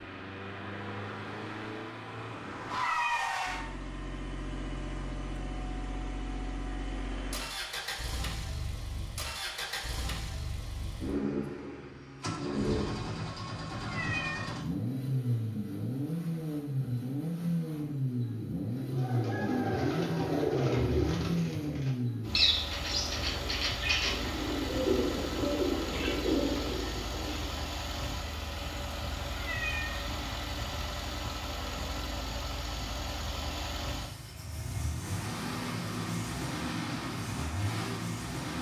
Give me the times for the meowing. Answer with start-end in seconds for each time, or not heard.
2.8-3.2, 13.8-14.5, 29.4-30.1.